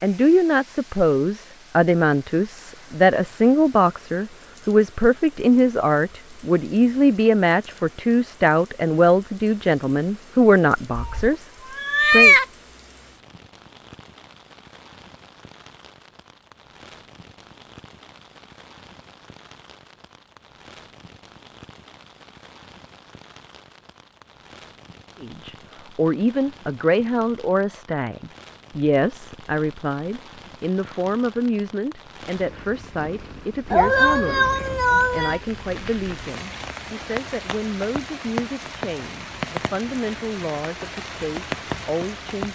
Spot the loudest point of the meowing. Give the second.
12 s.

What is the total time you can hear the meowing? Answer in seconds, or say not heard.
3 s.